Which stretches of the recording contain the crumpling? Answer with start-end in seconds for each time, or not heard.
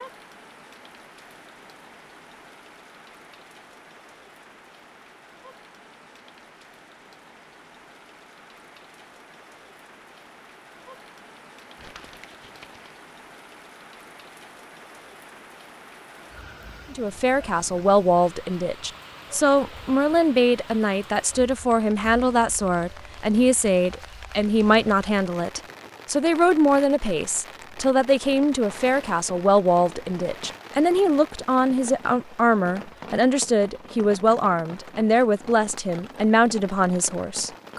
11.8-13.0.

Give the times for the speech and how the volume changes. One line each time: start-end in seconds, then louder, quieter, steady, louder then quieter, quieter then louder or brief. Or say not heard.
16.9-37.7 steady.